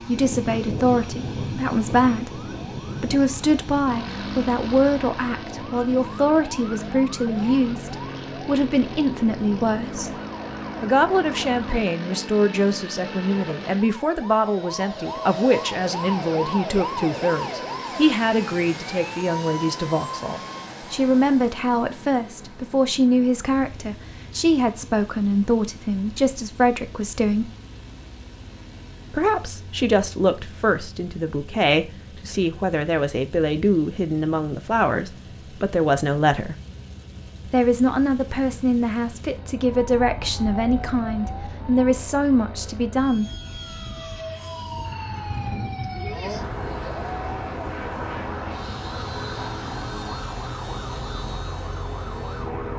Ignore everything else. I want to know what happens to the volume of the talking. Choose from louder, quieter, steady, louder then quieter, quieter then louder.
steady.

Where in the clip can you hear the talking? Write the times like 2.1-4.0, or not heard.
0.1-10.2, 10.8-27.5, 29.1-36.5, 37.5-43.2.